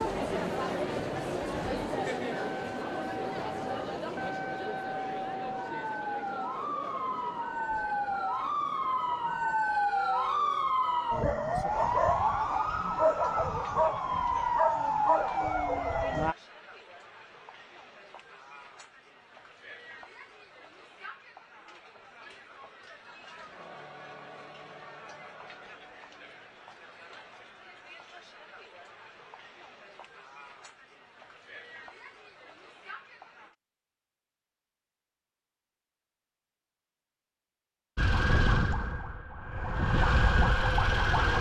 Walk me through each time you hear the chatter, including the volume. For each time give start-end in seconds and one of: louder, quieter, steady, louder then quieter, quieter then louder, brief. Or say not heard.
0.0-33.5 quieter.